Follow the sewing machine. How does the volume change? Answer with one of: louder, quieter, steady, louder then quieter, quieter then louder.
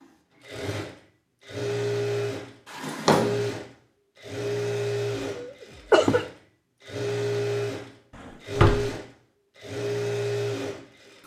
steady.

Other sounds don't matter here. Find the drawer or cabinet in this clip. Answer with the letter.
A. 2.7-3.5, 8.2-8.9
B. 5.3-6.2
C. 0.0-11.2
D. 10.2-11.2
A.